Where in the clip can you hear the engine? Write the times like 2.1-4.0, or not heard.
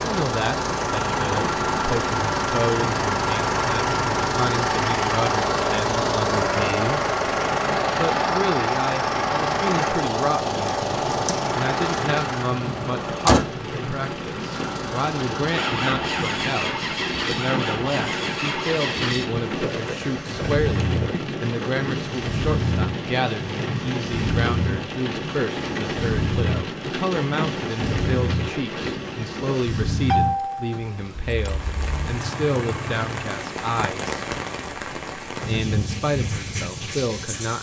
0.0-33.5.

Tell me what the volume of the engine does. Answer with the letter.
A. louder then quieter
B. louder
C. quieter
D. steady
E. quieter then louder
C.